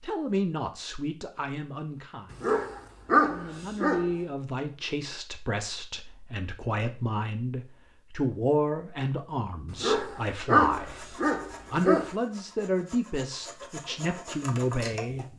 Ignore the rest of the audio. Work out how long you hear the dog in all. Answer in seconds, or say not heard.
4 s.